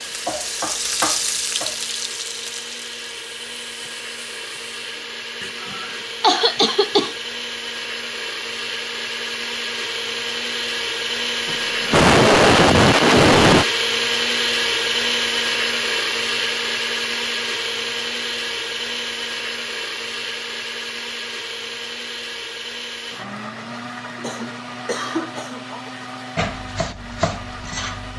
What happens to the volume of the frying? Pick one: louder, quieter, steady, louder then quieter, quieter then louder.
quieter.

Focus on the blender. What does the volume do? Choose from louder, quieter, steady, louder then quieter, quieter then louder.
louder then quieter.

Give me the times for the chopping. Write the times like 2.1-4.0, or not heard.
0.1-1.9, 26.4-28.1.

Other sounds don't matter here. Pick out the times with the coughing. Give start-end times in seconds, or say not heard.
5.4-7.2, 11.4-13.7, 24.1-25.9.